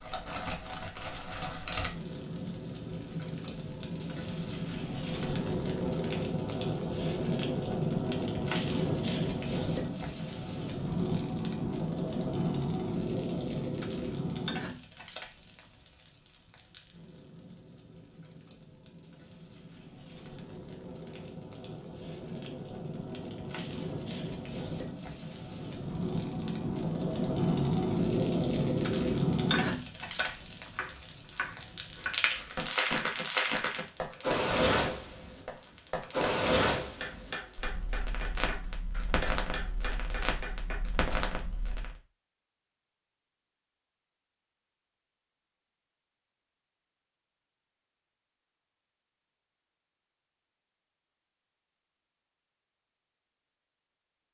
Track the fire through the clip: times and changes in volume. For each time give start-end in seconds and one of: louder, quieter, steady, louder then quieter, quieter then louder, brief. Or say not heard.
0.0-42.0 quieter then louder.